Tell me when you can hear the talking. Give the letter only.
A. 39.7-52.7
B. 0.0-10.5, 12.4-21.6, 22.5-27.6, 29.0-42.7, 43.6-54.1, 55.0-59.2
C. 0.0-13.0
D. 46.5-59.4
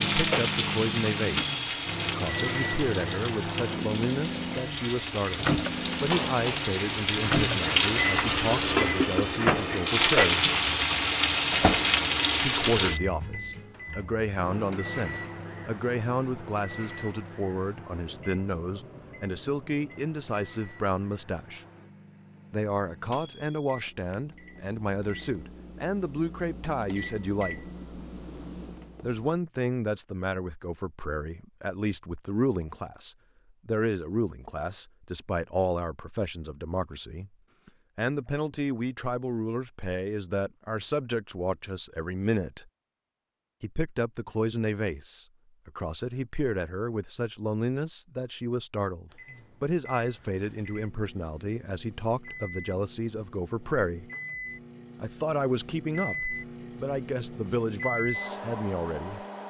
B.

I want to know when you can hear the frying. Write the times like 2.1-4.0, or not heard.
0.0-13.0.